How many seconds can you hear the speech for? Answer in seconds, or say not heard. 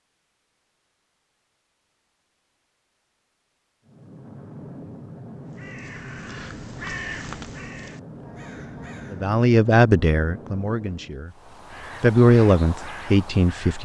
5 s.